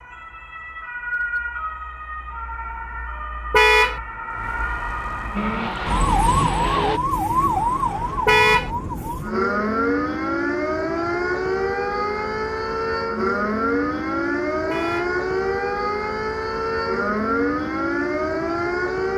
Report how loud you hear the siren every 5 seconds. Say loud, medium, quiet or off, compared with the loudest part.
medium, loud, loud, loud.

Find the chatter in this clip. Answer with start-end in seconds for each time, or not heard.
not heard.